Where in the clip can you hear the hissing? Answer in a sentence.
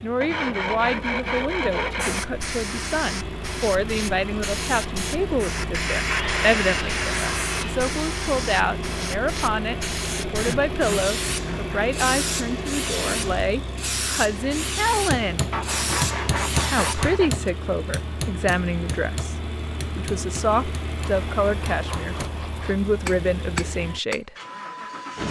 You can hear the hissing from 1.9 to 17.5 s.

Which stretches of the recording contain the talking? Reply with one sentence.
The talking can be heard from 0.0 to 15.5 s and from 16.6 to 24.4 s.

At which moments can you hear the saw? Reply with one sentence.
You can hear the saw from 0.2 to 2.2 s, from 6.0 to 7.9 s, from 10.3 to 11.8 s, from 15.5 to 17.3 s and from 20.9 to 22.9 s.